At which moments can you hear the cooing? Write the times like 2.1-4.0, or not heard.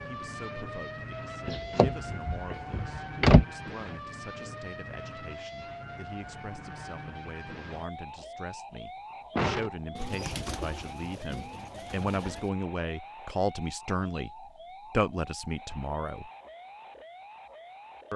9.9-12.5.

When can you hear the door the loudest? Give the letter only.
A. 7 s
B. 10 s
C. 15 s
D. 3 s
D.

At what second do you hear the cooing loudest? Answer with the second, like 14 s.
10 s.